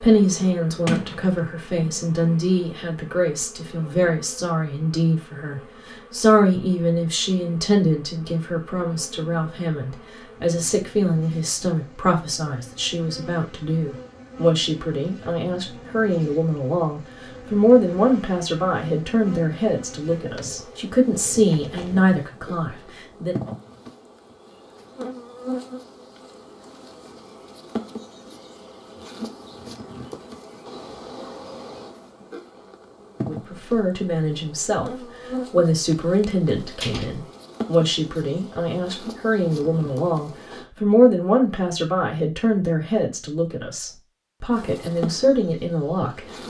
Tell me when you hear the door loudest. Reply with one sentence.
The volume of the door peaks at 1 second.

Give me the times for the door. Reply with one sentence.
The door can be heard from 0.8 to 2.0 s and from 35.9 to 37.1 s.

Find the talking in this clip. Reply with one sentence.
You can hear the talking from 0.0 to 23.5 s and from 33.2 to 46.2 s.